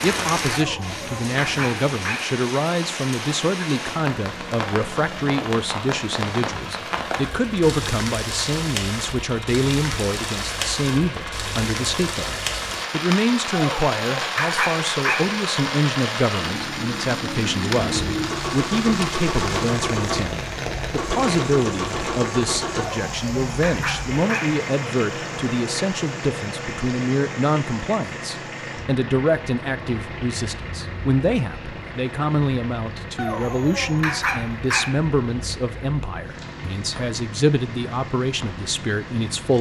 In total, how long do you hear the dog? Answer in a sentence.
The dog can be heard for 7 seconds in total.